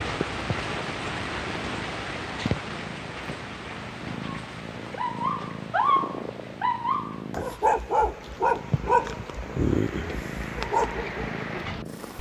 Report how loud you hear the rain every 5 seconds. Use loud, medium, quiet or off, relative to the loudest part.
loud, medium, loud.